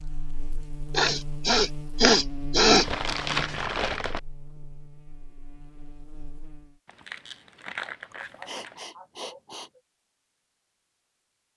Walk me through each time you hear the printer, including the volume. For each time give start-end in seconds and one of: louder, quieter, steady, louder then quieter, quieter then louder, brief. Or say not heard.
not heard.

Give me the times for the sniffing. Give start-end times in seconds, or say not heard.
0.9-2.9, 8.1-9.7.